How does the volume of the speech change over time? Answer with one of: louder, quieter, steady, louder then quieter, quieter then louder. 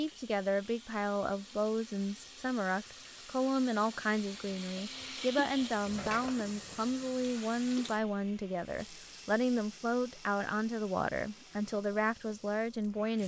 steady.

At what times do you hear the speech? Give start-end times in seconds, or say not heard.
0.0-13.2.